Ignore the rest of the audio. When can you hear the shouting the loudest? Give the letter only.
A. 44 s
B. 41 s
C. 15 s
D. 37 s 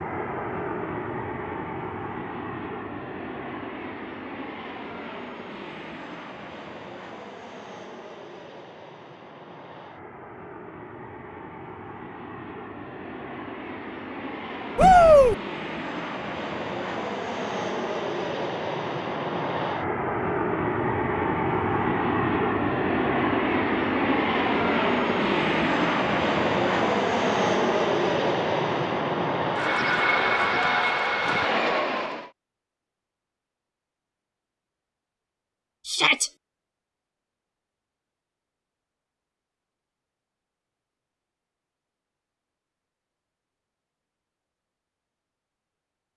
C.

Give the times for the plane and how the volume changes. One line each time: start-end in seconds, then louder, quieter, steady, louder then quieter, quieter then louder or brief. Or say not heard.
0.0-32.3 quieter then louder.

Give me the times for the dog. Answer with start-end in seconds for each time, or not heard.
not heard.